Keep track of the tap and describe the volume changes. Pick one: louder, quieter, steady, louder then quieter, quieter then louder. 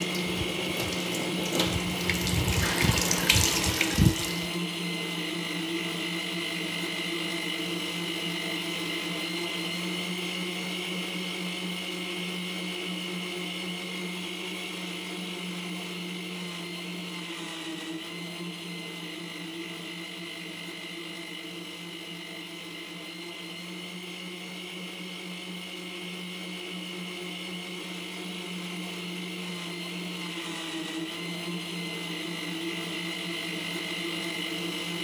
louder.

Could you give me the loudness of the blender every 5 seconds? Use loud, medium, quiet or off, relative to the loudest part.
loud, loud, loud, medium, medium, medium, loud.